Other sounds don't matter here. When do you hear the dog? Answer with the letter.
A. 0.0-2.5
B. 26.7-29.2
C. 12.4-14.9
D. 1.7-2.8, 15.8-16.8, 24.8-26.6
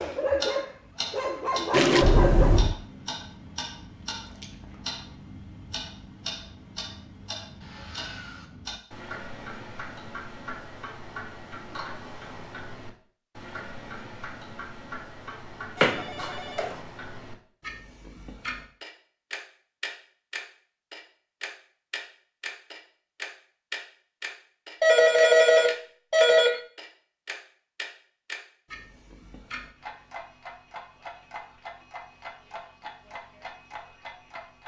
A.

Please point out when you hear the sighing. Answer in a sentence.
You can't hear the sighing here.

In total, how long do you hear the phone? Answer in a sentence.
You can hear the phone for 4 seconds altogether.